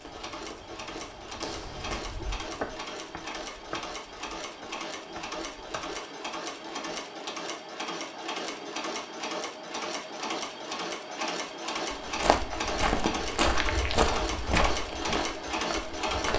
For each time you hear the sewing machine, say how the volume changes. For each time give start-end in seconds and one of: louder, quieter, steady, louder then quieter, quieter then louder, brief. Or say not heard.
0.0-16.3 louder.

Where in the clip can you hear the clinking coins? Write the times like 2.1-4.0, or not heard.
not heard.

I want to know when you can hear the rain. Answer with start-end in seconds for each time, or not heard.
not heard.